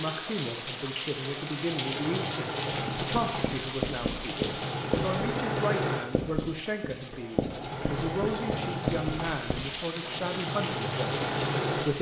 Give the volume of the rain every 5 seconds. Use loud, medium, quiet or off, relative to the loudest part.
loud, medium, loud.